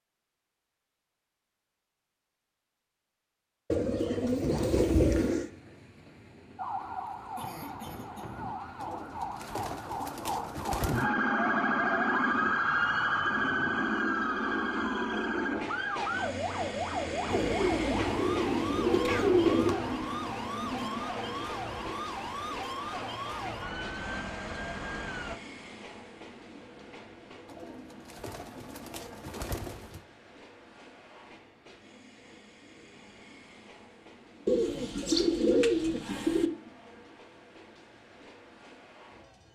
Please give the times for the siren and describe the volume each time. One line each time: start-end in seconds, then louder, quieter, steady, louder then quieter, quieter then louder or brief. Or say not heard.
6.5-25.4 louder then quieter.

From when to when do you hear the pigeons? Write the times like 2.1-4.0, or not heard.
3.7-5.5, 8.8-11.1, 17.2-19.8, 27.4-30.0, 34.5-36.5.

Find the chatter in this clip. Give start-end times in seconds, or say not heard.
not heard.